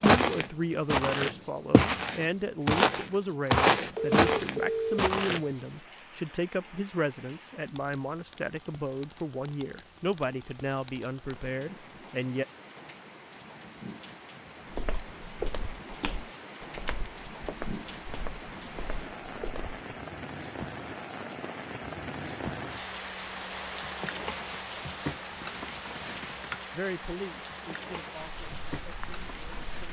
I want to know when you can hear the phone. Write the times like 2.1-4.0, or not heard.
3.5-5.0.